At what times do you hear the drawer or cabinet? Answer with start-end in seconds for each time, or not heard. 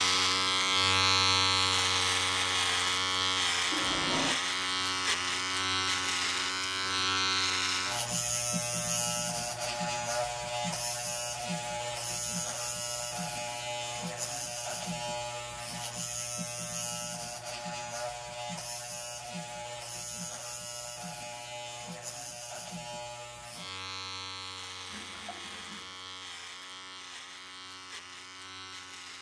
not heard.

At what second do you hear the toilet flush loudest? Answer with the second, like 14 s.
4 s.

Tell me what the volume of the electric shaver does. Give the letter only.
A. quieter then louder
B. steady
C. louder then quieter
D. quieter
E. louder
D.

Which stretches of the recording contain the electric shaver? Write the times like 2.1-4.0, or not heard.
0.0-29.1.